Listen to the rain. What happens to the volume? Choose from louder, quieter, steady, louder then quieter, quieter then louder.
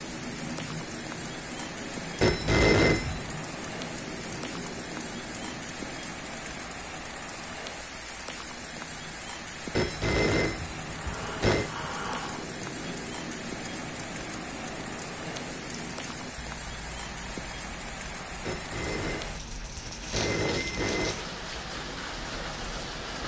steady.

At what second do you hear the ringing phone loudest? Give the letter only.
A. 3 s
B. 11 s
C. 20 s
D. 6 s
A.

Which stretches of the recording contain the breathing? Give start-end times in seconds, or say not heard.
10.9-12.9.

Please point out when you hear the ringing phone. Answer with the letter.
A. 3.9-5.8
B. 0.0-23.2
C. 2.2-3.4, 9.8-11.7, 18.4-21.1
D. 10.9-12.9
C.